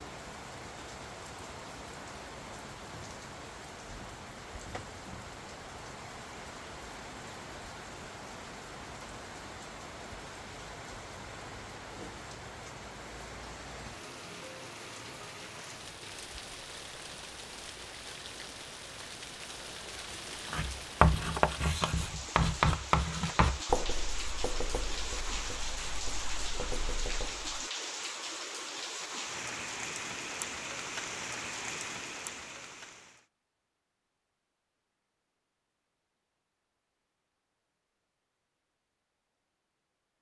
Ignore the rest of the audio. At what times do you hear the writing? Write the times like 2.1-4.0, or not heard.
20.4-27.6.